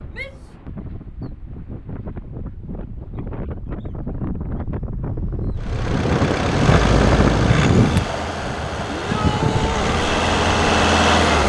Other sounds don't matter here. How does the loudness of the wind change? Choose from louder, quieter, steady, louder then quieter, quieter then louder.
louder then quieter.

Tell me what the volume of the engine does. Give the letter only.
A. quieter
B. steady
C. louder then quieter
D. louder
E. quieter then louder
E.